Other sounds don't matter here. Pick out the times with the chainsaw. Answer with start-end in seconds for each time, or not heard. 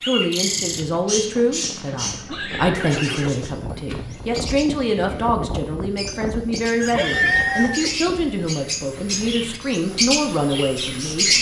not heard.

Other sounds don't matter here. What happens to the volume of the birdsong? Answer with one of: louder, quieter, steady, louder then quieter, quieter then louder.
quieter then louder.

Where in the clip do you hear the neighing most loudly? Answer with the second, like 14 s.
7 s.